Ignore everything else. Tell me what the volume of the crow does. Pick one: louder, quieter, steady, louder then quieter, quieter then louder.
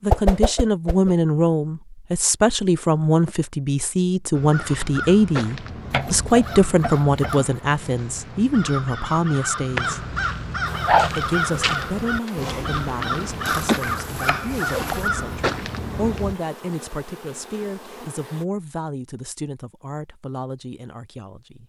louder.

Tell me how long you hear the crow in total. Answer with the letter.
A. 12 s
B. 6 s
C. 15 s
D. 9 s
A.